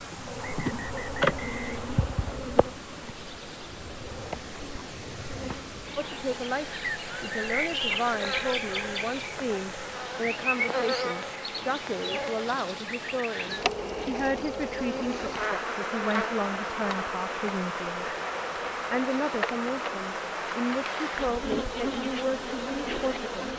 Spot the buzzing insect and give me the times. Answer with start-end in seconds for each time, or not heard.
0.0-23.5.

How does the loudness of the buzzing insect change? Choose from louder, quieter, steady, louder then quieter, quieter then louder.
steady.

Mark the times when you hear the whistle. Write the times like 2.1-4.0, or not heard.
0.3-2.4.